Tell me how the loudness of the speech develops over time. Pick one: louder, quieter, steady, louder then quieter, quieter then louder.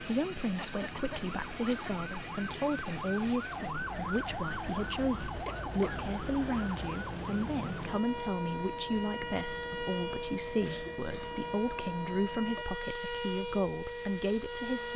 steady.